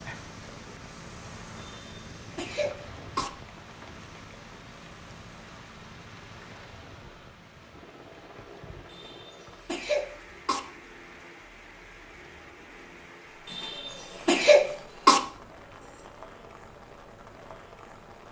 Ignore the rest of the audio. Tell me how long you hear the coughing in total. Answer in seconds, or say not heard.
5 s.